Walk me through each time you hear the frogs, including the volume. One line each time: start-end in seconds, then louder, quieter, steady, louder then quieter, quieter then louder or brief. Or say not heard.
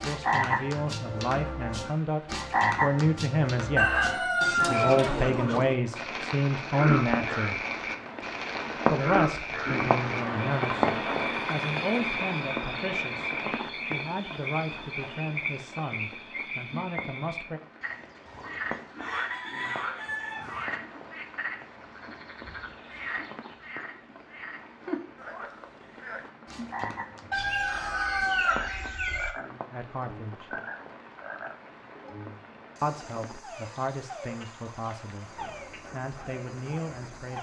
0.0-37.3 quieter.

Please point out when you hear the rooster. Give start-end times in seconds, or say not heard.
3.8-5.7, 18.2-20.7, 27.3-29.3.